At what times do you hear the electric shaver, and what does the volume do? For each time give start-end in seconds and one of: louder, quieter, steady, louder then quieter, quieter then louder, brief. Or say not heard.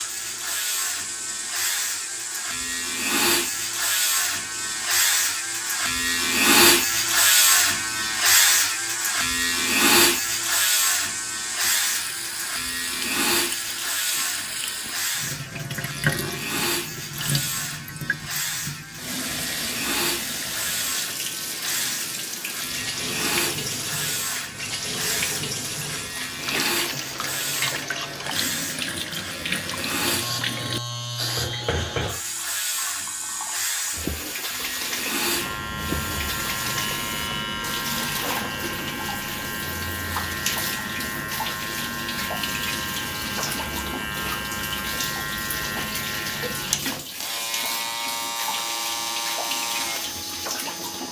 0.0-51.0 quieter.